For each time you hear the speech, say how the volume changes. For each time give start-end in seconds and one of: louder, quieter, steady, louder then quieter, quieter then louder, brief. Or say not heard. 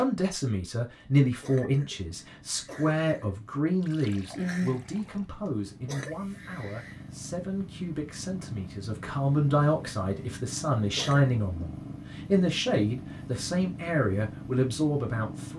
0.0-15.5 quieter then louder.